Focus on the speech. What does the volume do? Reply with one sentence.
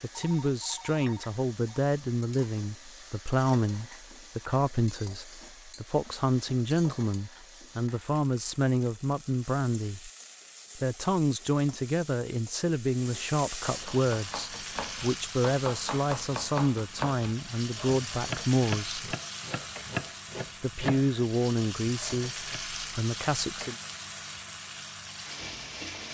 The volume of the speech stays about the same.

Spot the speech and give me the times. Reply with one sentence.
The speech can be heard from 0.0 to 10.1 s, from 10.8 to 19.0 s and from 20.6 to 23.8 s.